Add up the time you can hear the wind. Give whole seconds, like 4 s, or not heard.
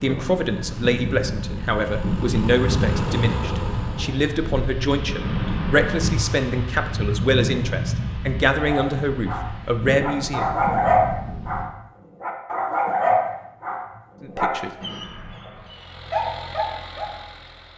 12 s.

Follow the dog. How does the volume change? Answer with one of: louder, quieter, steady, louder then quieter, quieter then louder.
louder then quieter.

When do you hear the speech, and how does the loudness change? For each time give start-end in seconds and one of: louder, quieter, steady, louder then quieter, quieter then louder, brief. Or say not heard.
0.0-10.4 steady
14.2-14.7 brief.